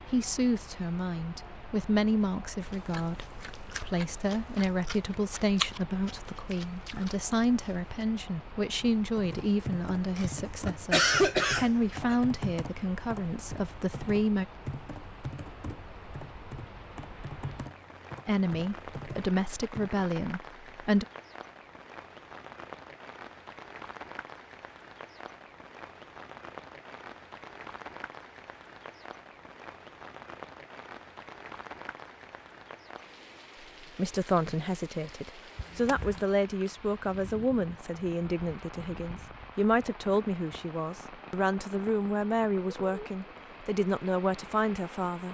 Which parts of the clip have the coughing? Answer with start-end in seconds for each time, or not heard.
10.2-12.2, 35.5-36.2.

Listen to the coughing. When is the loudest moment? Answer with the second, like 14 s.
11 s.